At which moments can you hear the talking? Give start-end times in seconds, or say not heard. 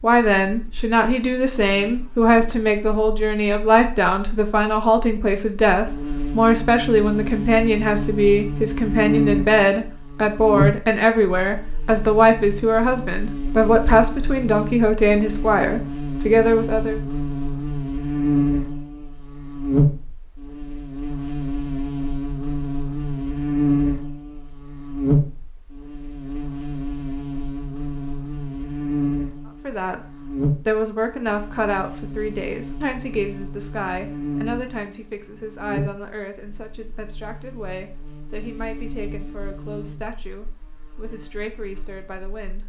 0.0-17.0, 29.6-42.6.